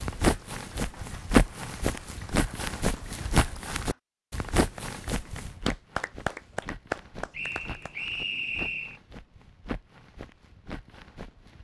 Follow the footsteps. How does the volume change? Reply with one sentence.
The loudness of the footsteps goes down.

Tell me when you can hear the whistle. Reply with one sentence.
The whistle can be heard from 7.3 to 9.0 s.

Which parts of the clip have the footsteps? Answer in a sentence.
The footsteps can be heard from 0.0 to 11.5 s.